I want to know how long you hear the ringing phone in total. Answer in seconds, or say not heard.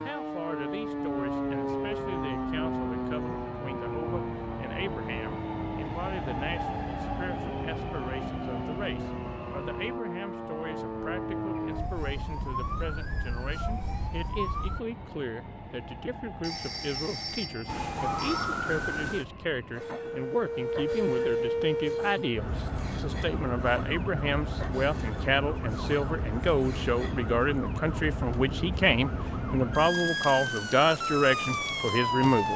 2 s.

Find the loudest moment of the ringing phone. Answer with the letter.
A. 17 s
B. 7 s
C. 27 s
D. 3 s
A.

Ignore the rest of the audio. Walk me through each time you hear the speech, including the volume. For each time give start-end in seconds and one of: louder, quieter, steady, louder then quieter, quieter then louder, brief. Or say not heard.
0.1-32.5 louder.